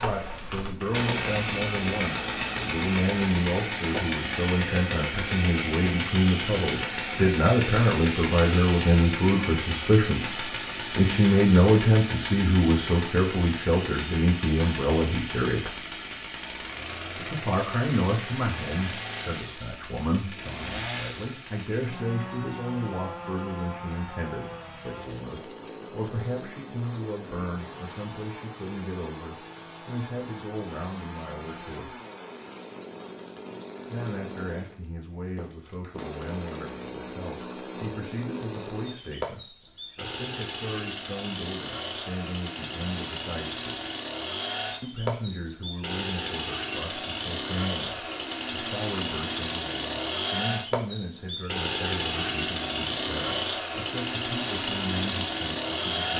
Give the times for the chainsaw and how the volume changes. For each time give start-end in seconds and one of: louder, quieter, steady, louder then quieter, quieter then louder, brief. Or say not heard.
0.0-56.1 quieter then louder.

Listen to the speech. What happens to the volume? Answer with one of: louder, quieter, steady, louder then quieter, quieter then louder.
quieter.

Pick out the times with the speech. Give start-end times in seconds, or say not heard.
0.0-15.8, 17.1-31.9, 33.9-43.9, 44.8-56.1.